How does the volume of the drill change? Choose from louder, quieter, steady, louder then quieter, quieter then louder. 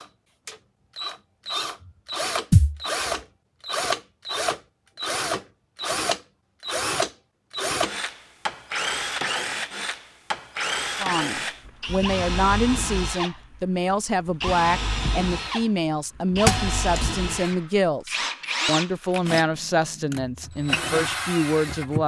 steady.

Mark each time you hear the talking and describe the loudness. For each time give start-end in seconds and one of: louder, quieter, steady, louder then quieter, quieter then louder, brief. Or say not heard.
11.0-22.0 steady.